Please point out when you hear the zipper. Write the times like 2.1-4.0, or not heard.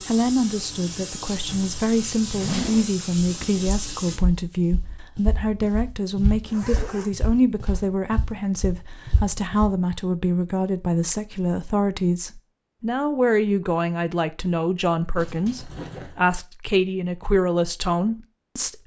1.4-3.0, 6.5-7.1, 15.2-16.2.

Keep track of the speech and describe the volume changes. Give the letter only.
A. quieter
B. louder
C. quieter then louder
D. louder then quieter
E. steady
E.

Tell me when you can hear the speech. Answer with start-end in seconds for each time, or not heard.
0.1-18.8.